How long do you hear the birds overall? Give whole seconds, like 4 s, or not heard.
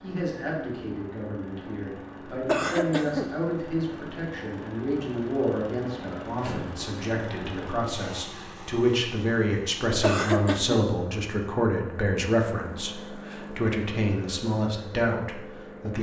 not heard.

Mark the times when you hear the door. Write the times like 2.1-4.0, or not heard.
6.3-6.8.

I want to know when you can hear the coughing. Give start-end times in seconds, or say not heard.
2.5-3.3, 10.0-10.8.